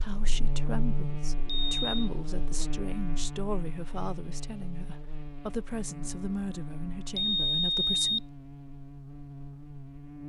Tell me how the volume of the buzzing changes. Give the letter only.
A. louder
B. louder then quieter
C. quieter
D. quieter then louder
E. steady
C.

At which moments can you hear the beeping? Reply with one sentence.
The beeping can be heard from 1.4 to 2.1 s and from 7.2 to 8.2 s.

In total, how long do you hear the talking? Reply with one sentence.
You can hear the talking for 8 seconds altogether.